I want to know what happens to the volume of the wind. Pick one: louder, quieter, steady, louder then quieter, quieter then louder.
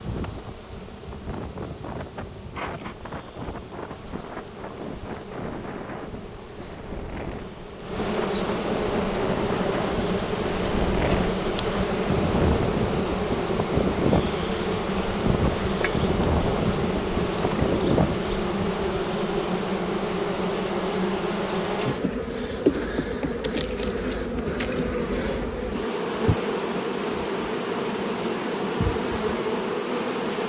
louder.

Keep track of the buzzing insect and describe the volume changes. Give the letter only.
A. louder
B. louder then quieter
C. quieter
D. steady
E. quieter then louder
A.